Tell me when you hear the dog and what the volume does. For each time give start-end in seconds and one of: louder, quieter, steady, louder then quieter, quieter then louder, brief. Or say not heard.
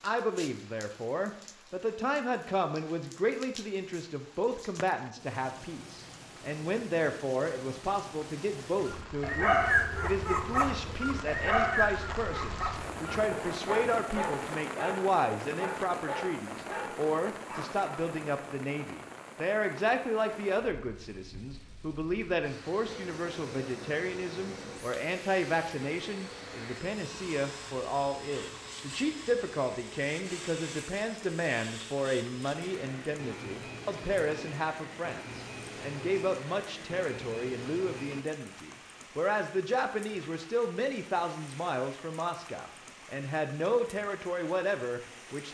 8.8-17.9 quieter.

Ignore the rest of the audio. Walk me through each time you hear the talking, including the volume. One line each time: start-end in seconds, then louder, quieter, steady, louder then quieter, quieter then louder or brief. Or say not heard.
0.0-45.5 steady.